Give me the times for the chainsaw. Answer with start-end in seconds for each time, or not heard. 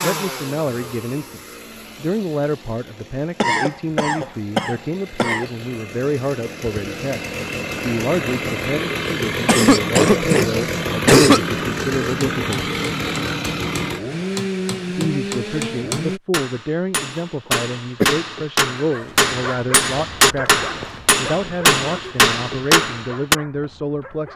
0.0-16.2.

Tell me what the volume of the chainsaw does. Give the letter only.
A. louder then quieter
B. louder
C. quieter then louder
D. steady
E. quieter
B.